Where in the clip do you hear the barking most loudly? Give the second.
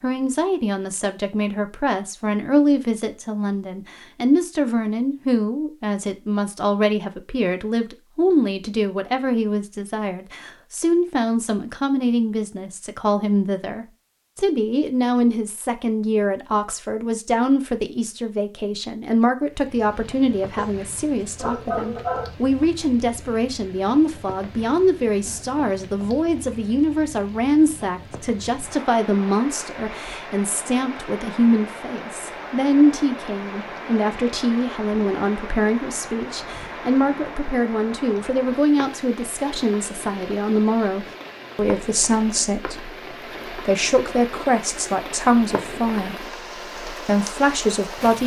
22 s.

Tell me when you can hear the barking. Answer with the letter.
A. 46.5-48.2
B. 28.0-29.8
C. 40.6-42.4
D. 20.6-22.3
D.